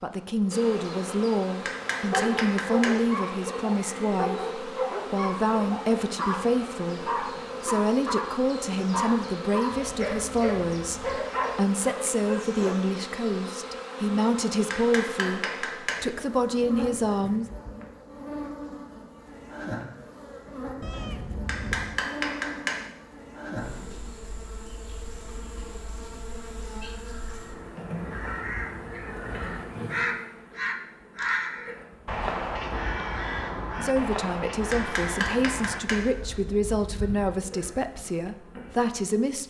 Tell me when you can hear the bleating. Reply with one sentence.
You can't hear the bleating here.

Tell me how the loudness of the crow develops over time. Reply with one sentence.
The volume of the crow goes up, then down.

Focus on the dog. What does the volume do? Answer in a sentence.
The loudness of the dog stays about the same.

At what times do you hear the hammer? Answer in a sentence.
The hammer can be heard from 1.6 to 3.0 s, from 14.7 to 16.1 s, from 21.4 to 22.9 s and from 34.7 to 36.1 s.